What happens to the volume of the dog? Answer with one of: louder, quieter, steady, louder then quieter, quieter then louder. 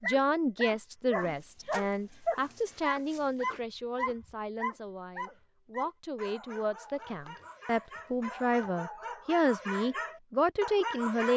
quieter then louder.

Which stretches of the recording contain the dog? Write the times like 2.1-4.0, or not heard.
0.0-11.3.